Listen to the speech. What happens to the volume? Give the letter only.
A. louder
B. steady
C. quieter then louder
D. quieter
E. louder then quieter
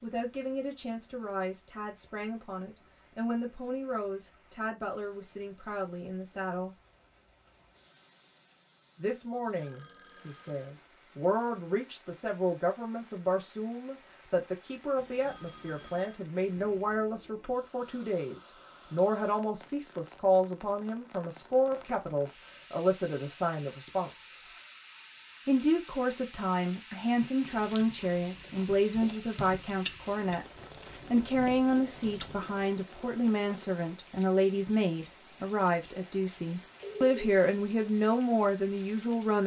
A.